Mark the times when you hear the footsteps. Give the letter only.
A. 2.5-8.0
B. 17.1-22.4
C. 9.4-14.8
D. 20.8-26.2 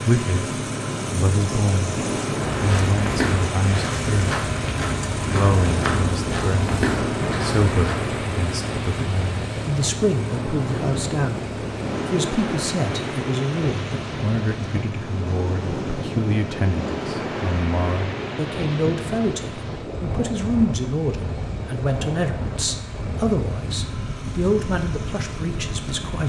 A.